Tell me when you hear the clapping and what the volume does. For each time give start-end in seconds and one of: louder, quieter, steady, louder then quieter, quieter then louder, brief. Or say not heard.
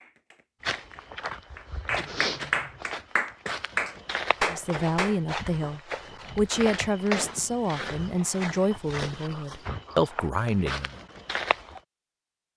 0.0-5.2 louder.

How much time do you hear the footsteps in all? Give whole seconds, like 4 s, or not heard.
11 s.